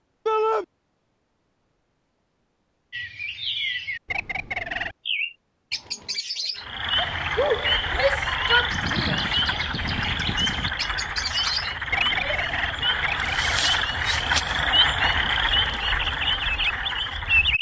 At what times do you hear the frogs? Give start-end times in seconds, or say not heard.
6.5-17.5.